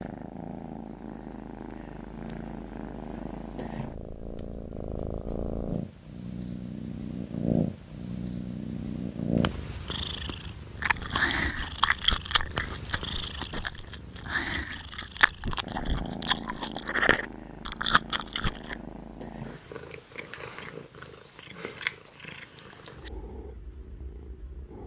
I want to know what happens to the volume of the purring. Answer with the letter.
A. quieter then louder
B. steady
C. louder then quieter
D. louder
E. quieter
C.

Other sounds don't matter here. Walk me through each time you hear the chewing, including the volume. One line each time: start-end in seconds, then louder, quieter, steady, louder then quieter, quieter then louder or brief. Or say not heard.
10.8-18.8 quieter then louder.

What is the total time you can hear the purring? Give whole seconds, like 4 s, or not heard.
25 s.